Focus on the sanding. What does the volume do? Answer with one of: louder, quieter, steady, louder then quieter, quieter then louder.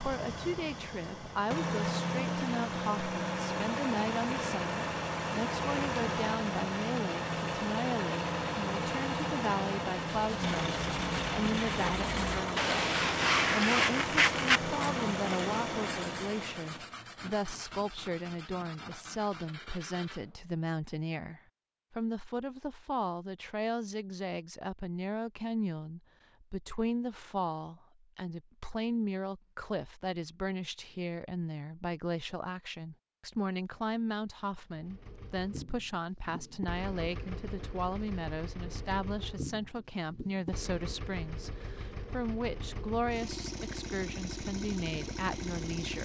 louder then quieter.